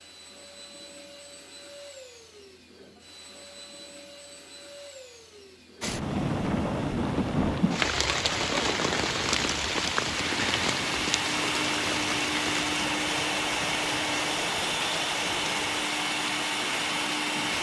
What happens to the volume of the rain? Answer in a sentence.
The volume of the rain goes down.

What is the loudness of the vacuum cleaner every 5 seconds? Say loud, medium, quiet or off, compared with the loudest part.
quiet, quiet, loud, loud.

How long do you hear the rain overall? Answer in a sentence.
You can hear the rain for 12 seconds altogether.